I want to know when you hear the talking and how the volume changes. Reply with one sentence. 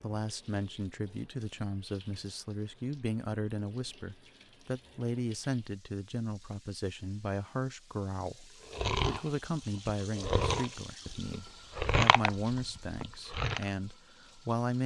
The talking can be heard from 0.0 to 14.8 s, at a steady volume.